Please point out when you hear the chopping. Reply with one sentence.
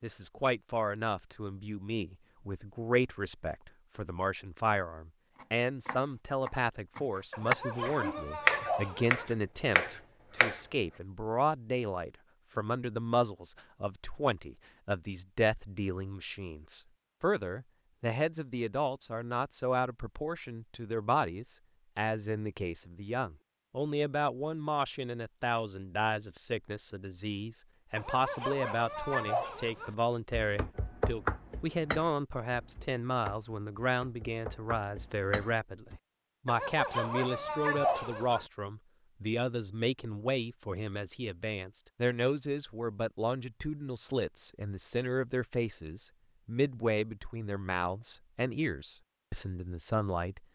You can hear the chopping from 5.3 to 10.6 s and from 30.3 to 36.0 s.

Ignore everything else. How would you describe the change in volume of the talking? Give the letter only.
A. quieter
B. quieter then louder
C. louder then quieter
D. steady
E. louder
D.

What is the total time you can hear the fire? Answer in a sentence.
You can't hear the fire here.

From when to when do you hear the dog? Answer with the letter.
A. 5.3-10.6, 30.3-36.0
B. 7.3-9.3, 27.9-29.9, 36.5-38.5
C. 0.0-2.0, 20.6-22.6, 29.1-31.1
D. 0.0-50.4
B.